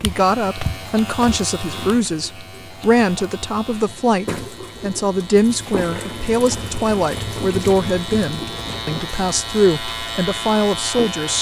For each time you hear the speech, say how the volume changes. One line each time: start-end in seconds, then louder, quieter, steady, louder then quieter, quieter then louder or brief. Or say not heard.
0.0-11.3 steady.